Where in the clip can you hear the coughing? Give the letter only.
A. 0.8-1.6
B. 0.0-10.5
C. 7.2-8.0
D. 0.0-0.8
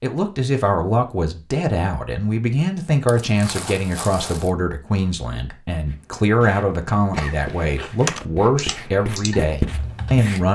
C.